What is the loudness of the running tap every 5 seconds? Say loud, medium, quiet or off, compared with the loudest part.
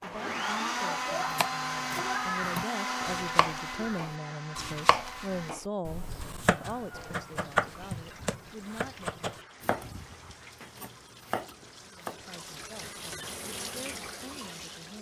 off, medium, loud.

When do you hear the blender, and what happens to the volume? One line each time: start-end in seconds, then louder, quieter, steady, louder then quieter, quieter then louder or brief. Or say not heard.
0.0-5.5 quieter.